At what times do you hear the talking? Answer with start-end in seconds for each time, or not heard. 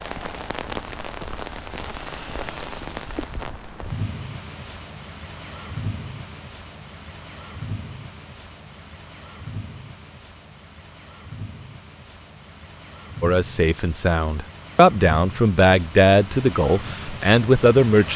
13.2-18.1.